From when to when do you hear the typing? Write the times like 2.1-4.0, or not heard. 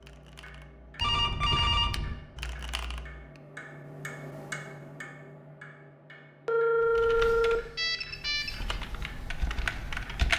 0.0-3.4, 6.8-10.3.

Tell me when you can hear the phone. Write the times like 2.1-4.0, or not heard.
1.0-2.1, 6.5-8.8.